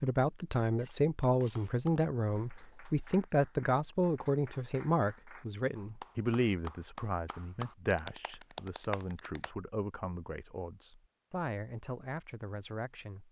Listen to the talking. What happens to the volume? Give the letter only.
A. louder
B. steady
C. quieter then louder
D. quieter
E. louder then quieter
D.